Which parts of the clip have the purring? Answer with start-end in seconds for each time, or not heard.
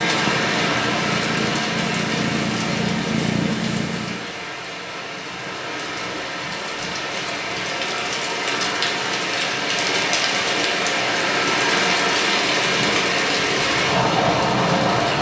0.0-4.3.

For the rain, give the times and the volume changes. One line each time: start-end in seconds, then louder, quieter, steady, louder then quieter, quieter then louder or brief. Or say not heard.
0.0-15.1 quieter then louder.